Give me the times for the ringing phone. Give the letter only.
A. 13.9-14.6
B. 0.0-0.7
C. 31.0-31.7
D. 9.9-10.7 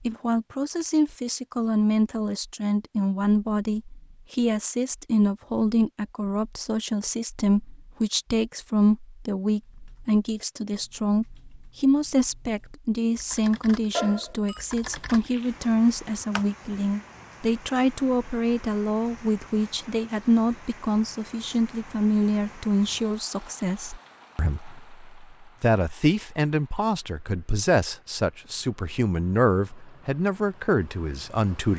A.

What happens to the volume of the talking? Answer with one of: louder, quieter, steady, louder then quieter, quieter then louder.
steady.